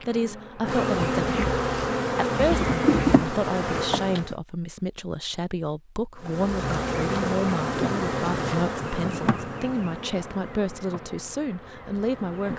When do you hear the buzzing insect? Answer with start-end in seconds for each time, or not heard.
0.0-4.3, 6.2-12.5.